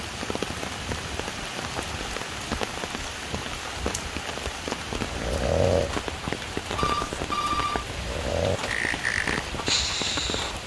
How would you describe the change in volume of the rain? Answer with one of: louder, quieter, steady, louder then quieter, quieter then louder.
steady.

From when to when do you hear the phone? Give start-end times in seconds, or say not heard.
6.8-7.8.